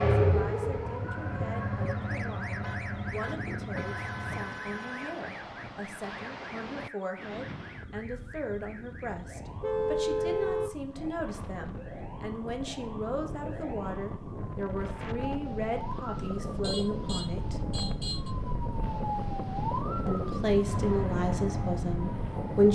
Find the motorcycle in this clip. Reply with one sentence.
You can hear the motorcycle from 0.0 to 4.5 s and from 20.6 to 22.6 s.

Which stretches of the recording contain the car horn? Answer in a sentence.
You can hear the car horn from 2.6 to 5.2 s, from 9.6 to 10.8 s and from 16.1 to 18.3 s.